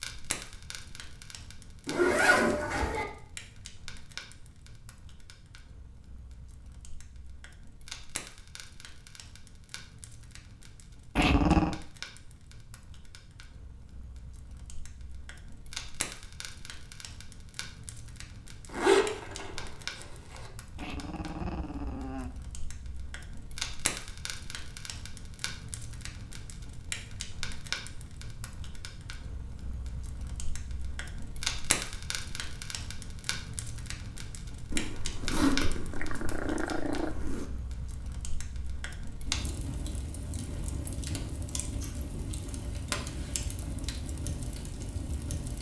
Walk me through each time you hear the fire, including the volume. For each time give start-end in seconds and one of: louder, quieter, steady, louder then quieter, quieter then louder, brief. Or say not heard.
0.0-45.5 louder.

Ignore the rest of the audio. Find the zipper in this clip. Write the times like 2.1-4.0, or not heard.
1.9-3.0, 18.7-20.5, 34.7-37.5.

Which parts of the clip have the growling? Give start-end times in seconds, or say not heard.
11.2-11.8, 20.8-22.3, 35.9-37.1.